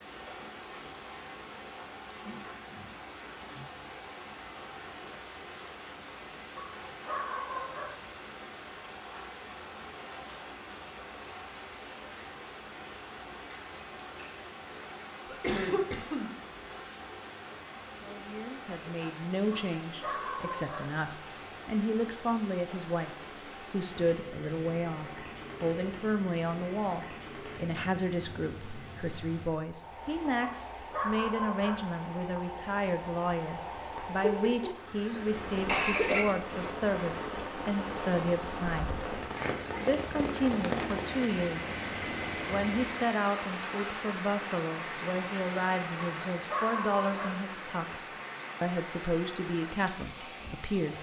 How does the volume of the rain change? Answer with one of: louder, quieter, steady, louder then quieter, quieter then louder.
louder.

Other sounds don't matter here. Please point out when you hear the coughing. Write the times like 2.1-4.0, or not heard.
15.2-16.3, 34.2-36.2.